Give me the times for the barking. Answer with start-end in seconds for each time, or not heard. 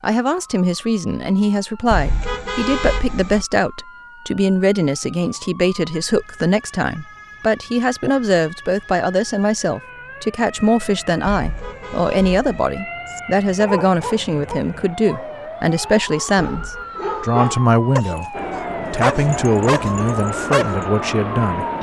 13.1-20.9.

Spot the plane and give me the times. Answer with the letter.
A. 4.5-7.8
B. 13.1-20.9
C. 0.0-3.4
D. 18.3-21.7
D.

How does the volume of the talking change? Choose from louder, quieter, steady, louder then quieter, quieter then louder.
steady.